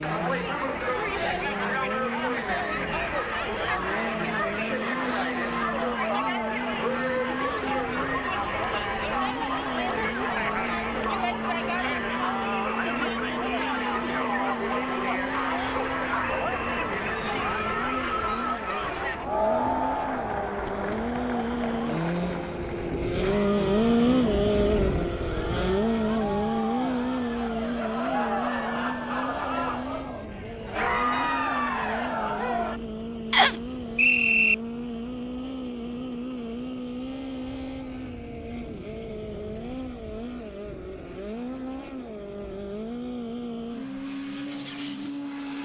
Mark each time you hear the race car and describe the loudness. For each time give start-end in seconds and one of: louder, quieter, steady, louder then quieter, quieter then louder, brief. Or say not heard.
0.0-45.6 louder then quieter.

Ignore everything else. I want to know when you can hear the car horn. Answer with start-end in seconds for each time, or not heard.
not heard.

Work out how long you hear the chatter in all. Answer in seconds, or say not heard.
33 s.